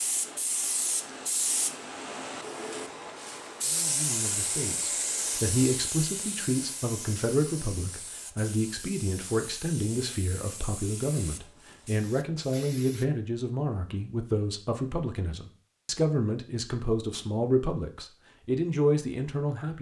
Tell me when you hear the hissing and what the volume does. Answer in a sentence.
You can hear the hissing from 0.0 to 13.1 s, getting quieter.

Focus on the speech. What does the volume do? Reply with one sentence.
The loudness of the speech stays about the same.